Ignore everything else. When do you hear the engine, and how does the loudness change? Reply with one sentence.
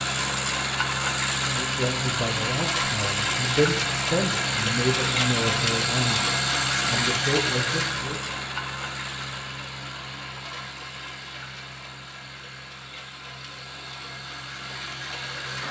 The engine can be heard from 0.0 to 15.6 s, getting quieter.